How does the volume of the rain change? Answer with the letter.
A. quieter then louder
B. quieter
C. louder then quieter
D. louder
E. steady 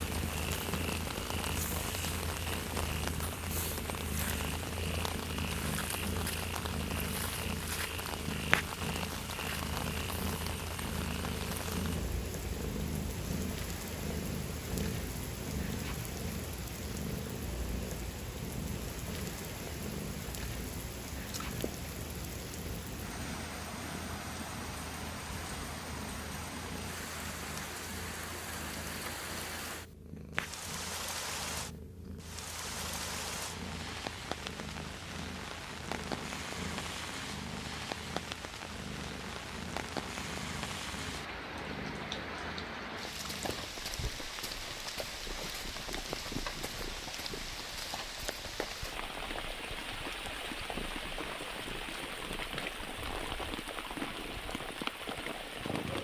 E.